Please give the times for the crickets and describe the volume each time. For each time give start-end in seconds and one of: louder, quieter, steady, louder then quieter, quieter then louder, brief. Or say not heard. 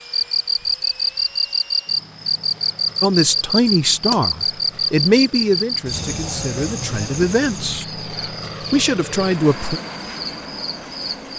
0.0-11.3 quieter.